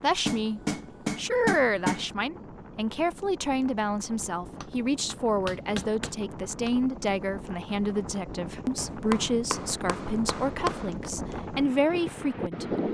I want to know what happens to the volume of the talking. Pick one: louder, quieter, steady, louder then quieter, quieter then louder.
steady.